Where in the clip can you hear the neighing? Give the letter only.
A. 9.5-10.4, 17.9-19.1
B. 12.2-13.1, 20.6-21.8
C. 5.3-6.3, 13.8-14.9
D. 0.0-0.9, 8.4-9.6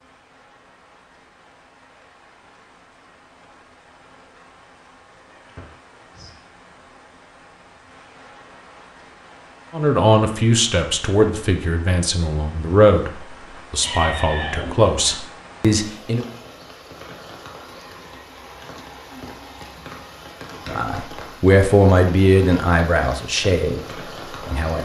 C.